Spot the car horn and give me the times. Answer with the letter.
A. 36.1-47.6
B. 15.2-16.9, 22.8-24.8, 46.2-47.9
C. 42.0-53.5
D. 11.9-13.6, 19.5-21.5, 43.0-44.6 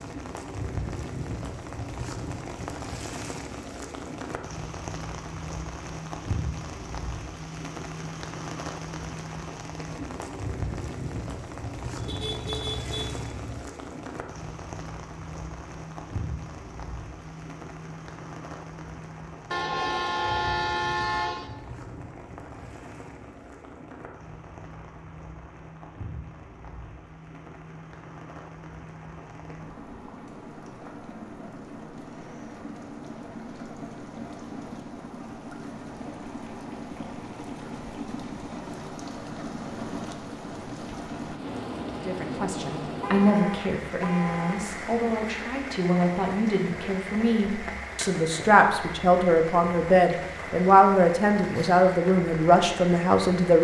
D.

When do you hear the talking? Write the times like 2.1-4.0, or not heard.
42.0-53.5.